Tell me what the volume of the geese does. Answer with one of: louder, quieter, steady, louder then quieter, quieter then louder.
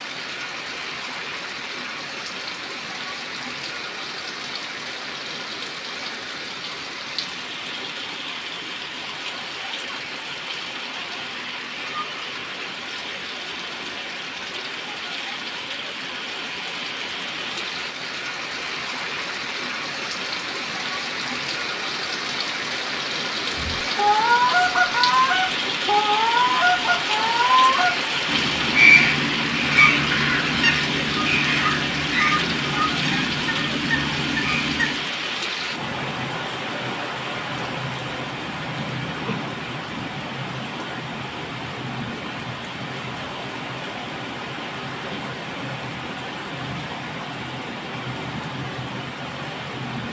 quieter.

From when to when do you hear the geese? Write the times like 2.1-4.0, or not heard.
23.6-35.0.